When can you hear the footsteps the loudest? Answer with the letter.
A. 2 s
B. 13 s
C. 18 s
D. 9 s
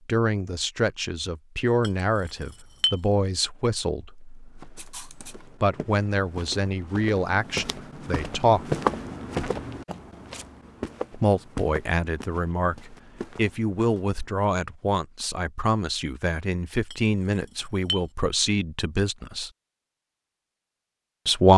D.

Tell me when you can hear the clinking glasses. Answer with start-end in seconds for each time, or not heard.
1.8-3.0, 16.9-18.1.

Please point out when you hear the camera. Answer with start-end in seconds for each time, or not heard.
4.8-5.3.